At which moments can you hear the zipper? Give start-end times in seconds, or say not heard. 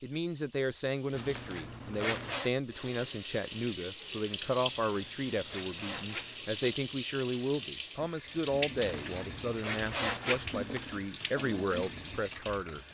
1.1-2.5, 4.8-6.6, 8.8-10.9.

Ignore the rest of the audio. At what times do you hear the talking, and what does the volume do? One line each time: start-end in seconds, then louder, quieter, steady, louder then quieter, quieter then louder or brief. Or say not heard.
0.0-12.8 steady.